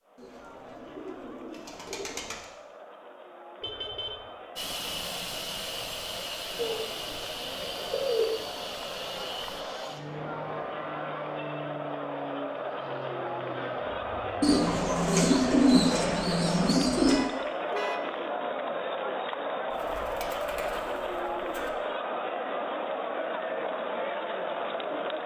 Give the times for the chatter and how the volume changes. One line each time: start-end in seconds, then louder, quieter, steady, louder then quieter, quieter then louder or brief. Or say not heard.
0.0-25.2 louder.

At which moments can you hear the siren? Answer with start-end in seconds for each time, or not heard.
not heard.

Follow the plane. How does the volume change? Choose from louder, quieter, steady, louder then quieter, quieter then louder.
quieter.